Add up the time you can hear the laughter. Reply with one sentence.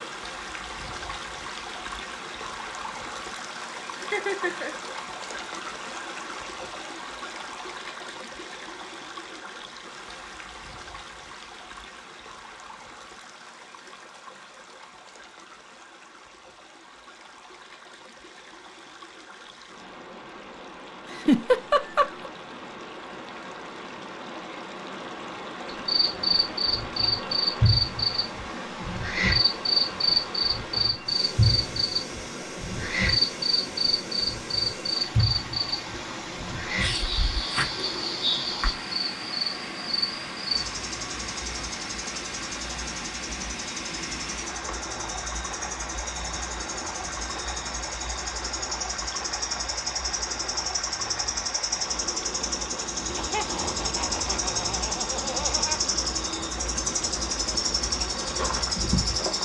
You can hear the laughter for 5 seconds altogether.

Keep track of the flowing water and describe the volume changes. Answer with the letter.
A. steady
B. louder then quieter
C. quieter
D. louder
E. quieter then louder
E.